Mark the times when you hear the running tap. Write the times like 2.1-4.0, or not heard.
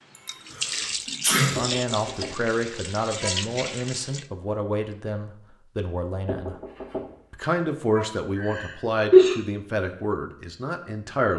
0.1-4.2.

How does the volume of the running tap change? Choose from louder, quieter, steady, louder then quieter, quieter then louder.
quieter then louder.